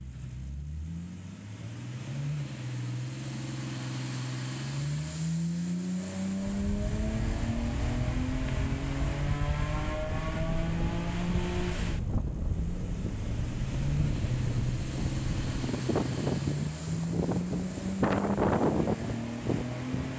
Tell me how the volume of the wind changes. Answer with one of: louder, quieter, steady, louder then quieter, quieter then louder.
louder.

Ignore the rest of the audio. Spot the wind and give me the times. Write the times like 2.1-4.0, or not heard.
6.4-20.1.